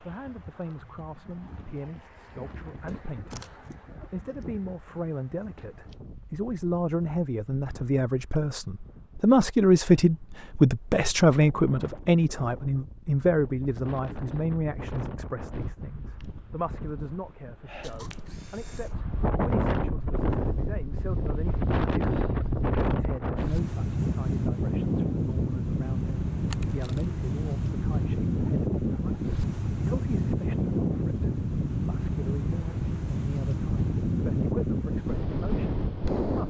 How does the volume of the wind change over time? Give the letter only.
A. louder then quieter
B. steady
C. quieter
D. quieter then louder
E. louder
E.